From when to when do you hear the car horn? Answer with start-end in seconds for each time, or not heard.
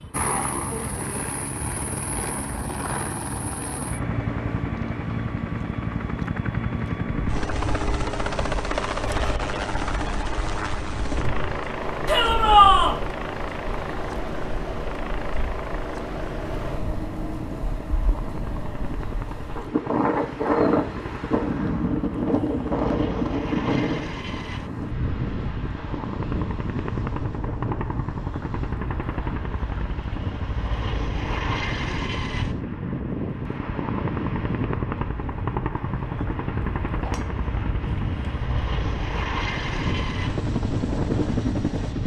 not heard.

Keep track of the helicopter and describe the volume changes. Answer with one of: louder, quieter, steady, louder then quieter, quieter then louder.
quieter then louder.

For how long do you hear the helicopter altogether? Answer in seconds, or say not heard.
42 s.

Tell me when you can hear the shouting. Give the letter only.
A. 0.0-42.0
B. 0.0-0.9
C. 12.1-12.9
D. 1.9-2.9
C.